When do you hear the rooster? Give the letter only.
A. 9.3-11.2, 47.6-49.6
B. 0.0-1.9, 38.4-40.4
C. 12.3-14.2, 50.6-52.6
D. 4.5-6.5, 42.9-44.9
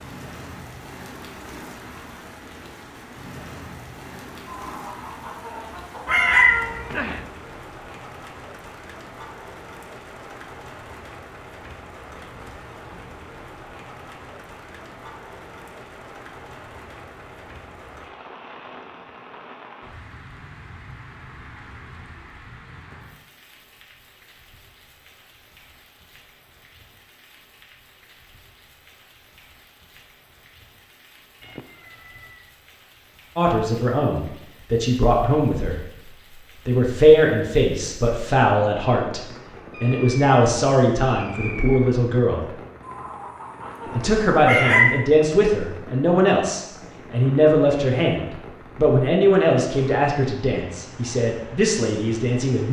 D.